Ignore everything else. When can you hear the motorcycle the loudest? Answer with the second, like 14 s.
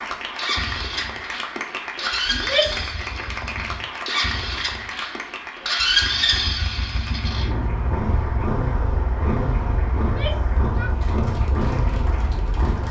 6 s.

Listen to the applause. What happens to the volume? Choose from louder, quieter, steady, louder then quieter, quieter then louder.
quieter.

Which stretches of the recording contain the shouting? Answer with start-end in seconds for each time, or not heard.
2.3-2.9, 10.0-10.9.